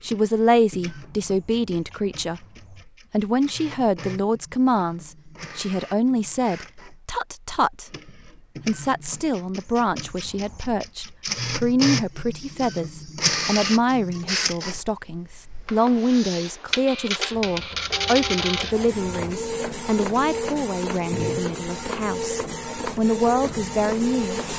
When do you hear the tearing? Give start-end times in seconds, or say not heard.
not heard.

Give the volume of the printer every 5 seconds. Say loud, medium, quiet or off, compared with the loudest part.
quiet, quiet, loud, loud, loud.